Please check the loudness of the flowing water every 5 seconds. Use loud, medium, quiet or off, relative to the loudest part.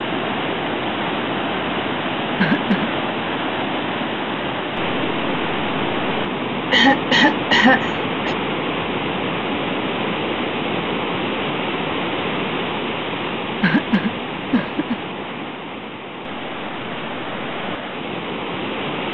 loud, loud, loud, medium.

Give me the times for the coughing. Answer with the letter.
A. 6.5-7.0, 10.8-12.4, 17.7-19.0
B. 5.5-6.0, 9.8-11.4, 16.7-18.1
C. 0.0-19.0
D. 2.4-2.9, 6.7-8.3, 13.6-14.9
D.